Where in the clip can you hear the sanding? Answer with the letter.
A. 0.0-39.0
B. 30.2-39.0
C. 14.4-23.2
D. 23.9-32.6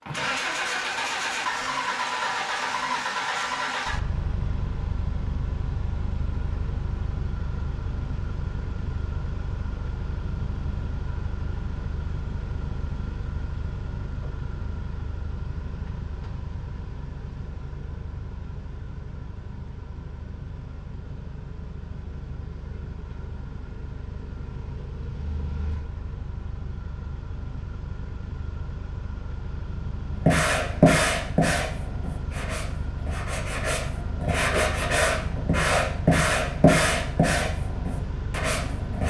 B.